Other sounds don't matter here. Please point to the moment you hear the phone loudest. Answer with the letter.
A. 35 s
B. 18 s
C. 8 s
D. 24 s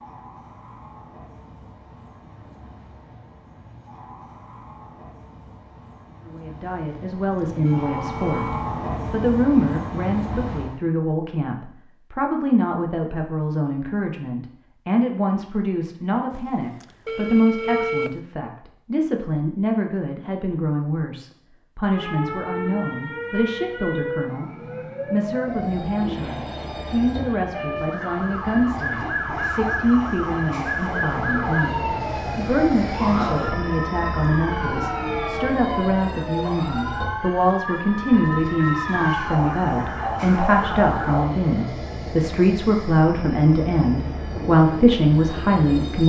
B.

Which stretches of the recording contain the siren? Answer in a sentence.
The siren can be heard from 21.9 to 41.2 s.